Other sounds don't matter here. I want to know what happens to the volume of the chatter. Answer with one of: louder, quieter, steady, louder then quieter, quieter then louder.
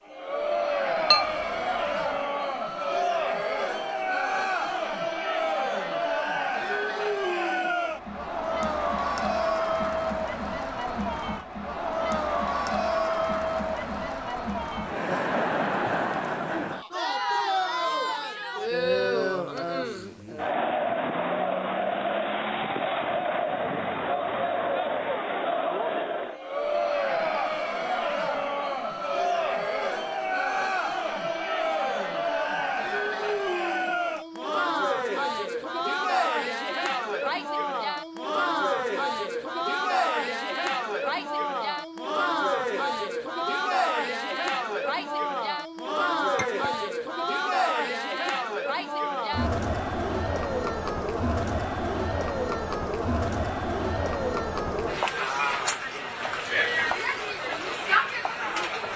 steady.